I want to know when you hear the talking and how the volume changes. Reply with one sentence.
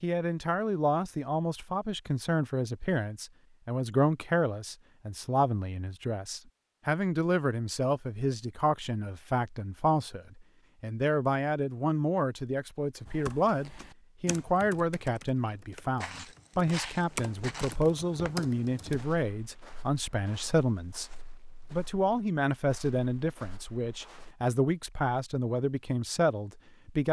The talking can be heard from 0.0 to 27.0 s, at a steady volume.